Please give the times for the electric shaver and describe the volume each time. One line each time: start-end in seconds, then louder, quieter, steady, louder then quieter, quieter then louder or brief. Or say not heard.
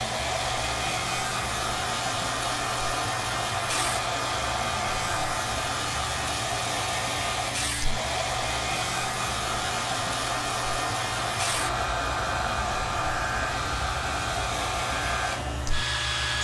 0.0-16.3 steady.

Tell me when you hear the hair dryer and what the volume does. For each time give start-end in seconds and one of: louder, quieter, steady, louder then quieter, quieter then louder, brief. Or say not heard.
0.0-16.3 steady.